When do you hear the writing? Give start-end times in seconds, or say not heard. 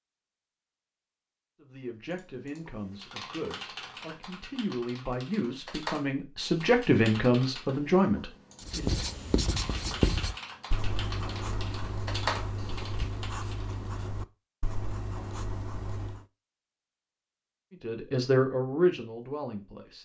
8.6-16.2.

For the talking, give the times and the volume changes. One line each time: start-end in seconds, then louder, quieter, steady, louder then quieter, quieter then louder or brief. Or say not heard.
1.6-9.0 louder
17.7-20.0 brief.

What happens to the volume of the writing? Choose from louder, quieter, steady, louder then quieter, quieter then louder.
quieter.